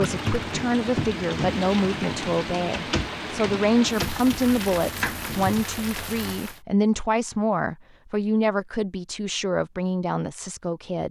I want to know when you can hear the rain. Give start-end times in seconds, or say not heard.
0.0-6.6.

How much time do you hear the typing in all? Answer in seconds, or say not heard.
6 s.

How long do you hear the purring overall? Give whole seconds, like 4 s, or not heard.
not heard.